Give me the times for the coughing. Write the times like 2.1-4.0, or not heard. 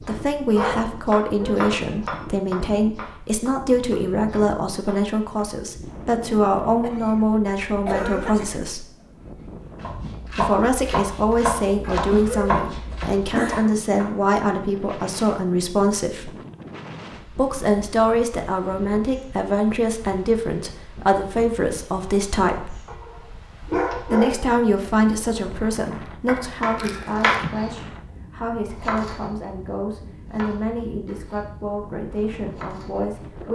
6.8-8.7, 11.8-13.7, 26.8-27.6.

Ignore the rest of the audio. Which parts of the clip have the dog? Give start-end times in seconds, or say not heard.
0.6-2.1, 22.9-24.6.